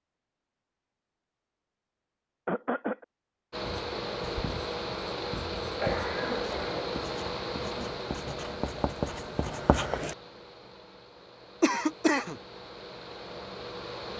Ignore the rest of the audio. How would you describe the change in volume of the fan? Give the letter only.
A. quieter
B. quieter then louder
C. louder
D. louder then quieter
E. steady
B.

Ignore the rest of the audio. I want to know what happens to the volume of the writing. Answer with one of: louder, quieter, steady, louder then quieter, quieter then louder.
louder.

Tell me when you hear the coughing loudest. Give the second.
12 s.